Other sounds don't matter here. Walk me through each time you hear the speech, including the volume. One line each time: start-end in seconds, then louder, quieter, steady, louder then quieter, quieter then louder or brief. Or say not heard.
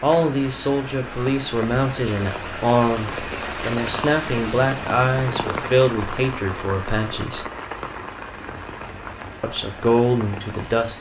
0.0-7.5 steady
9.4-10.9 brief.